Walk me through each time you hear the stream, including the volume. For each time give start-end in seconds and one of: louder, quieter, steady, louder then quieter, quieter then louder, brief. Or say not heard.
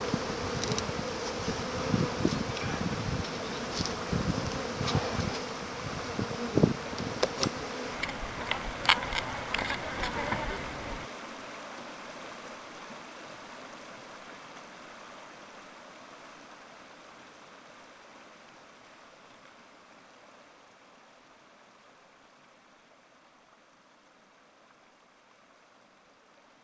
0.0-26.5 quieter.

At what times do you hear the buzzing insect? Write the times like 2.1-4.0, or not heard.
0.0-11.1.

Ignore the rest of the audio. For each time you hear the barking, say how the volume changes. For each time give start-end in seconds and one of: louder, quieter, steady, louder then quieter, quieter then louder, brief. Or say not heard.
not heard.